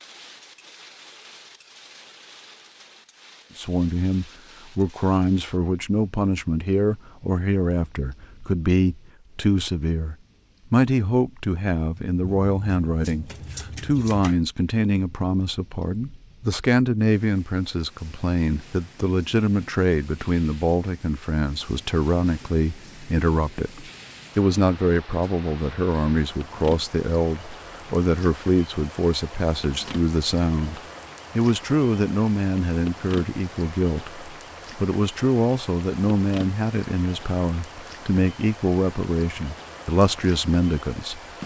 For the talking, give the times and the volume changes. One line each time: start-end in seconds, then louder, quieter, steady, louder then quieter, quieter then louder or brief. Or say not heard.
3.5-41.2 steady.